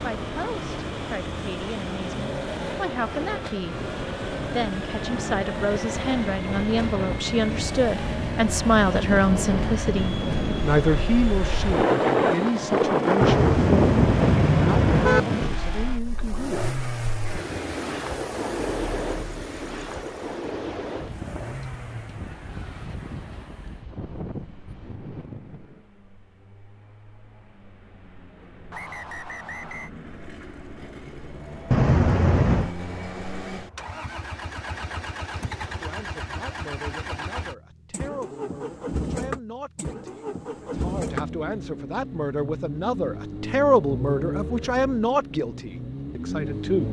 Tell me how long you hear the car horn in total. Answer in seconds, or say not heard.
3 s.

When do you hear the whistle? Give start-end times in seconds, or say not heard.
28.7-29.9.